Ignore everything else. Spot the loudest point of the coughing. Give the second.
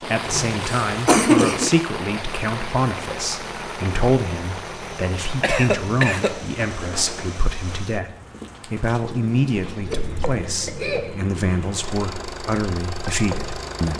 1 s.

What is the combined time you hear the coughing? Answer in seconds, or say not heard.
4 s.